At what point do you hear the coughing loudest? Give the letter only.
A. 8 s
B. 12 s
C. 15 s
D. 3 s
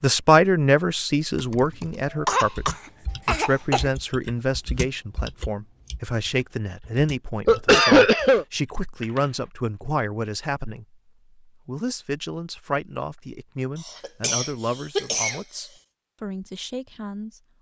A.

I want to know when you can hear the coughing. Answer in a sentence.
The coughing can be heard from 2.2 to 3.9 s, from 7.5 to 8.4 s and from 13.8 to 15.4 s.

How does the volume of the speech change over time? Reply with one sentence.
The volume of the speech goes down.